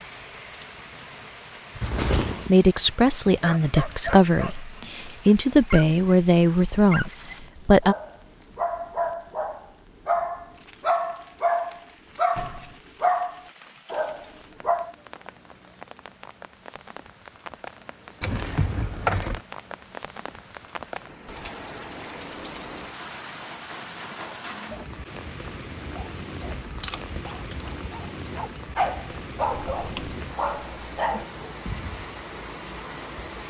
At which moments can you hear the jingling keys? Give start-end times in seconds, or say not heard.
1.8-2.5, 18.2-19.4, 26.6-27.8.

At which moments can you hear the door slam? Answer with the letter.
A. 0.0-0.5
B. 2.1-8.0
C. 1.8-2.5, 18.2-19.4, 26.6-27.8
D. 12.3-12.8
D.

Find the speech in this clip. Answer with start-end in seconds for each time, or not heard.
2.1-8.0.